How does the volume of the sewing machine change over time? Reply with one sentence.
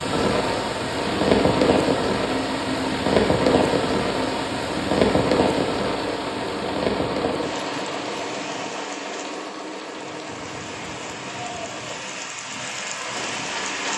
The loudness of the sewing machine goes down.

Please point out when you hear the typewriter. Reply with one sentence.
You can't hear the typewriter here.